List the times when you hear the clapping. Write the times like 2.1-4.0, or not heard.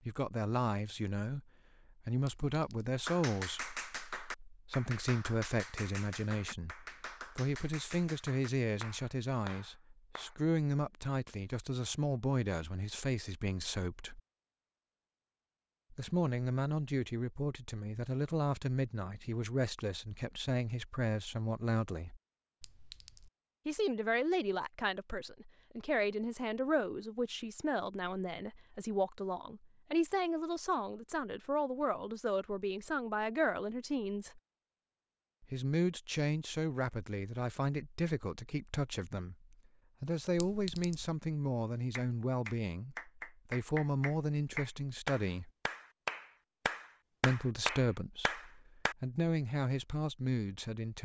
3.0-10.3, 42.0-49.0.